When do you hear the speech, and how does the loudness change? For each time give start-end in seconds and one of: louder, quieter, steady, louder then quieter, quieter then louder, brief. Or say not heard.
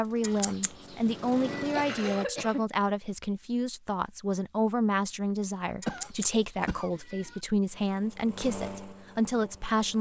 0.0-9.9 steady.